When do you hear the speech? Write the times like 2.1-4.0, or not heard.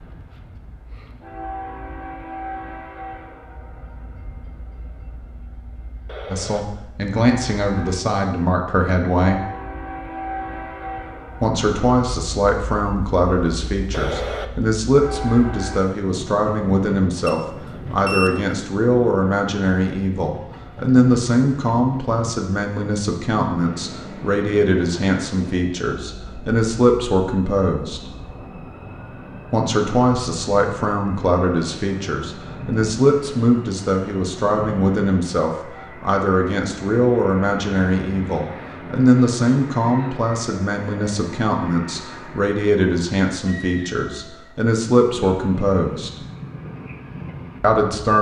6.3-9.4, 11.4-28.0, 29.5-46.1, 47.6-48.1.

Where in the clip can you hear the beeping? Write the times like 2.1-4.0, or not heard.
17.2-18.4.